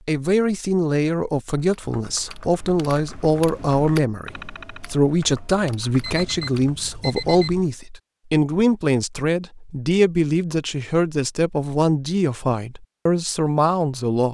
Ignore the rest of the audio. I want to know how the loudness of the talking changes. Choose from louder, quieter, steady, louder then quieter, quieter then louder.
steady.